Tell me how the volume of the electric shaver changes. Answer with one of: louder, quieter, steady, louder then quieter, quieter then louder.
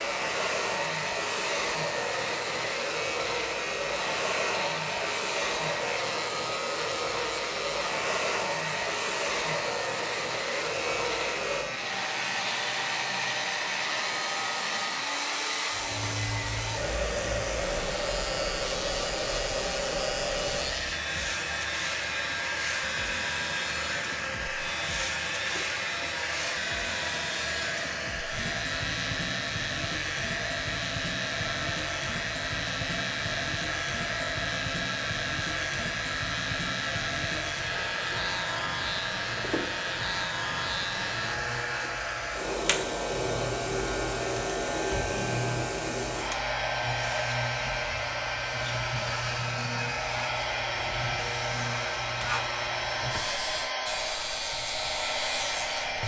steady.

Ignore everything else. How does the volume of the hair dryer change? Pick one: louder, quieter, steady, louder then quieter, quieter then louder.
steady.